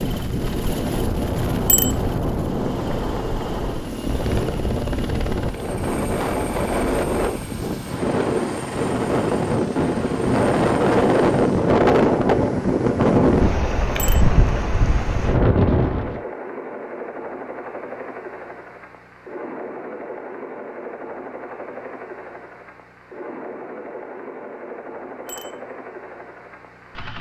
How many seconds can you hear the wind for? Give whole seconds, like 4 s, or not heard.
16 s.